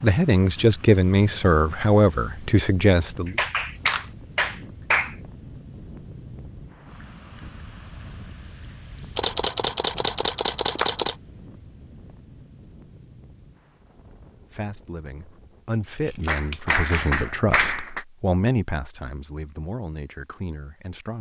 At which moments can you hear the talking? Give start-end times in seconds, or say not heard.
0.0-3.4, 14.5-21.1.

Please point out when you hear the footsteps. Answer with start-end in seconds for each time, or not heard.
not heard.